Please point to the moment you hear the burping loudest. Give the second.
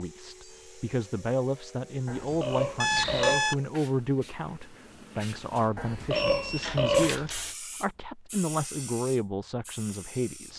7 s.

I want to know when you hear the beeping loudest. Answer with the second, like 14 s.
3 s.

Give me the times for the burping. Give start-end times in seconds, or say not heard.
2.0-3.5, 5.8-7.2.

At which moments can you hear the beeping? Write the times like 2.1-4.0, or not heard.
2.8-3.5, 6.2-7.3.